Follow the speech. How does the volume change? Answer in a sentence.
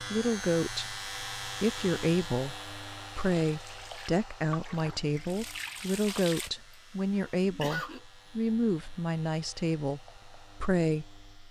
The loudness of the speech stays about the same.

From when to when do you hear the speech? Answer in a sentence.
The speech can be heard from 0.0 to 11.4 s.